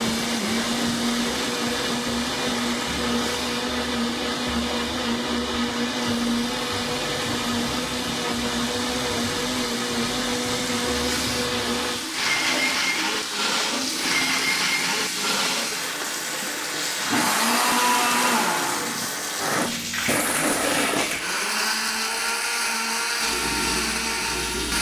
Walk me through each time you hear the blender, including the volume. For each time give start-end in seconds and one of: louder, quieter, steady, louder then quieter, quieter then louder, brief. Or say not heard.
0.0-24.7 steady.